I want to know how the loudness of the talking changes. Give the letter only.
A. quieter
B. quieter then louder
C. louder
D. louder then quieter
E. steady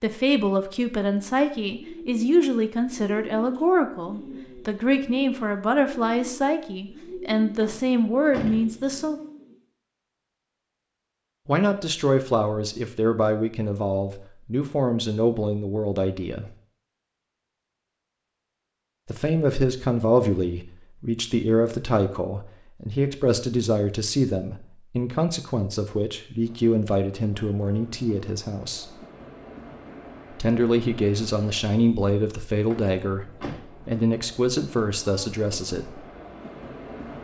E.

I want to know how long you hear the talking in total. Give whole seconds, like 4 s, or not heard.
30 s.